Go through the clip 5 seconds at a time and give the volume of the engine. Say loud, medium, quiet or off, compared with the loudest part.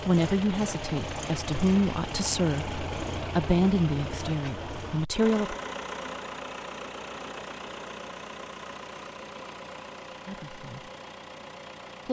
loud, loud, medium.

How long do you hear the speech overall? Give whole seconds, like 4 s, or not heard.
6 s.